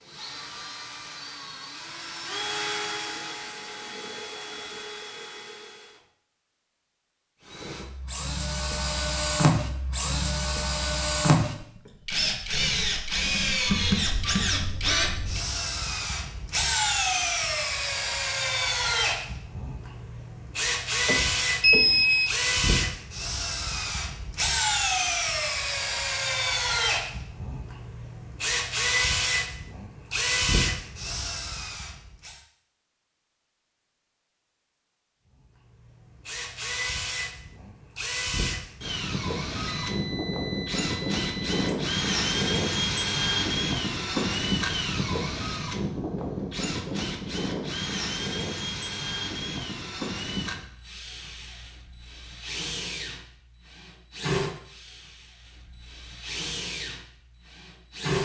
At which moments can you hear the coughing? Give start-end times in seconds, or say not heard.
not heard.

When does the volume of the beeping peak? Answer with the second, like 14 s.
22 s.